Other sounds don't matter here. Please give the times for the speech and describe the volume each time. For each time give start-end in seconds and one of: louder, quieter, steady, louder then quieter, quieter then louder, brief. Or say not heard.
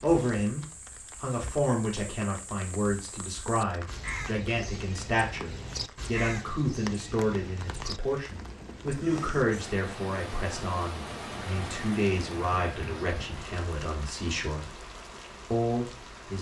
0.0-14.7 steady
15.5-16.3 brief.